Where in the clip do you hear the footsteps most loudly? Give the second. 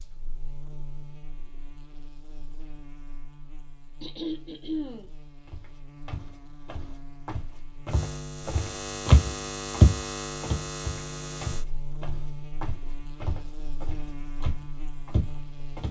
10 s.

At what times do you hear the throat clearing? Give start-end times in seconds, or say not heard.
4.0-5.1.